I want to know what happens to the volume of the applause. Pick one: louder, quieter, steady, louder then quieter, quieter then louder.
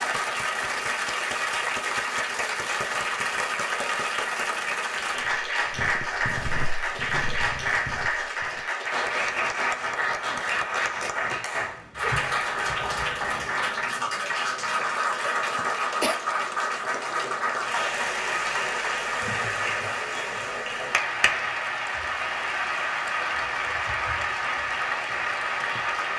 steady.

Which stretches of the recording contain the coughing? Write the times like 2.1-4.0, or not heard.
15.6-16.2.